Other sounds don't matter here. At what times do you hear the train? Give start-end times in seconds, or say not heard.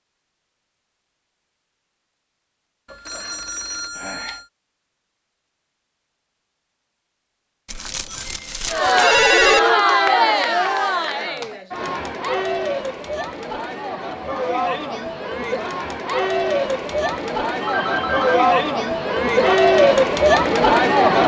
not heard.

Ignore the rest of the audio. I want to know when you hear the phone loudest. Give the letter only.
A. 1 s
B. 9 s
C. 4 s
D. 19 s
B.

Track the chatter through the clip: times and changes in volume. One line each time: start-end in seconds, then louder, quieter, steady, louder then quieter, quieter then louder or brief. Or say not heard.
8.7-21.2 quieter then louder.